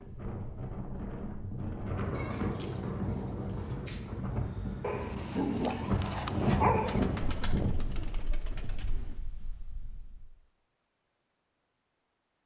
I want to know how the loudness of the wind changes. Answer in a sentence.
The loudness of the wind goes up, then down.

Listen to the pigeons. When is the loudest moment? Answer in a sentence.
The volume of the pigeons peaks at 8 seconds.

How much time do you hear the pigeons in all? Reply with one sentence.
The pigeons can be heard for 4 seconds in total.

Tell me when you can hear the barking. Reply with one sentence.
You can hear the barking from 4.8 to 7.0 s.